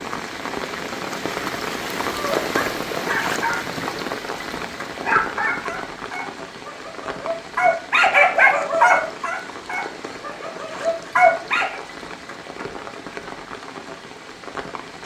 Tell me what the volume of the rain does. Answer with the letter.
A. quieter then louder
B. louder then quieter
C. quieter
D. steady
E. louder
C.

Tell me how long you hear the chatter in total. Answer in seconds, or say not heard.
not heard.